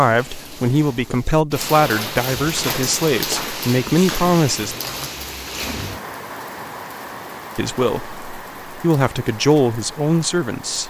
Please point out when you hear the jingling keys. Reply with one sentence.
You can't hear the jingling keys here.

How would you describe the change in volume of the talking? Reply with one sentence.
The loudness of the talking stays about the same.